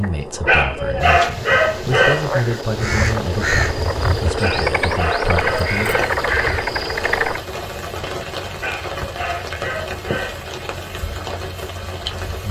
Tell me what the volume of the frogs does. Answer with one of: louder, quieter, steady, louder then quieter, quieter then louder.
louder.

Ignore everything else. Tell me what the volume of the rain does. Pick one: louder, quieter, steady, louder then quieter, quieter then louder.
steady.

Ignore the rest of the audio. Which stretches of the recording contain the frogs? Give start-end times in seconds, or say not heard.
0.0-7.4.